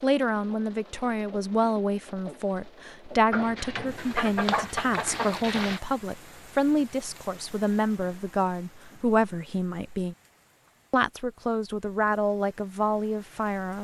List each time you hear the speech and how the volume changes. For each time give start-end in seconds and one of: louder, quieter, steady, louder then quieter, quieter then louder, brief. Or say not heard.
0.0-10.2 steady
10.9-13.8 brief.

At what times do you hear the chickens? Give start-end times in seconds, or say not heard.
3.3-5.8.